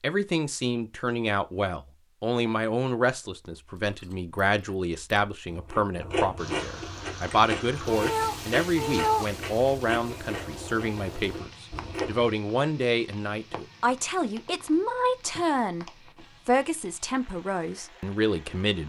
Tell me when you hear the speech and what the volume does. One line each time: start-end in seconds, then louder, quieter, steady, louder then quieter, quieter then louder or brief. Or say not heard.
0.0-15.8 steady
16.4-18.8 brief.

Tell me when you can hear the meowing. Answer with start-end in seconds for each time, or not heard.
7.8-9.2.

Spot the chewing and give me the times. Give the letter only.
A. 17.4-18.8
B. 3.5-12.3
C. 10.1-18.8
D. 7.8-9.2
B.